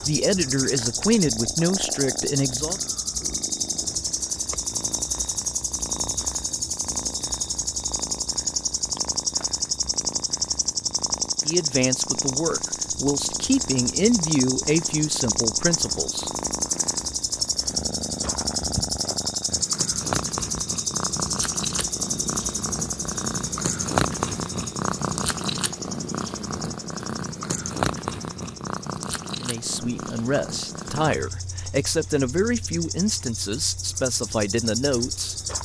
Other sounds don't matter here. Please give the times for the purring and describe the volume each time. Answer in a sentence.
The purring can be heard from 0.0 to 35.4 s, getting louder then quieter.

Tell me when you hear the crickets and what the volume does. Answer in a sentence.
The crickets can be heard from 0.0 to 35.5 s, getting quieter.